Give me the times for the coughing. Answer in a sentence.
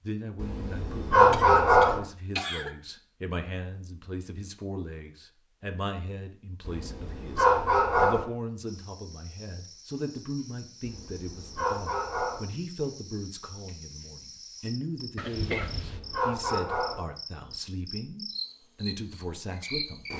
The coughing can be heard from 1.3 to 2.7 s and from 15.2 to 16.0 s.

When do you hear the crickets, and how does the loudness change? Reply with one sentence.
You can hear the crickets from 8.7 to 20.1 s, getting louder.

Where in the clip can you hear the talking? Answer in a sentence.
You can hear the talking from 0.0 to 20.1 s.